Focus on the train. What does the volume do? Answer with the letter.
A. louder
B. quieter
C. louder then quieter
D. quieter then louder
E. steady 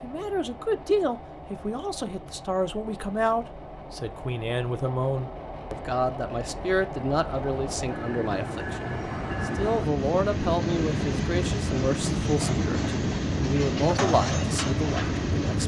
A.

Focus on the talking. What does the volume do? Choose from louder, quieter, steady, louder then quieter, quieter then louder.
steady.